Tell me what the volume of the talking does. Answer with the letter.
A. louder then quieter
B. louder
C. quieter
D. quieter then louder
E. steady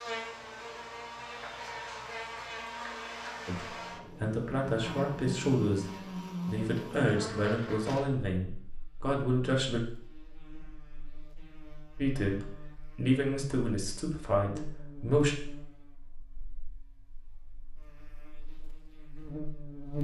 E.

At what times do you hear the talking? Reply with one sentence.
The talking can be heard from 3.5 to 9.8 s and from 11.9 to 15.3 s.